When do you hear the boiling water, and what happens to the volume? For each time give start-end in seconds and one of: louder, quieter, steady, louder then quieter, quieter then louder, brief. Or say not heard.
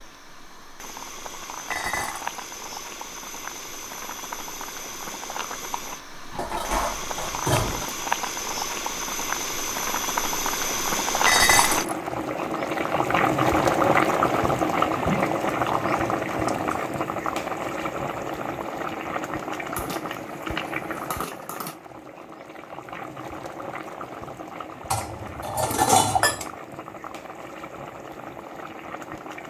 0.0-29.4 louder then quieter.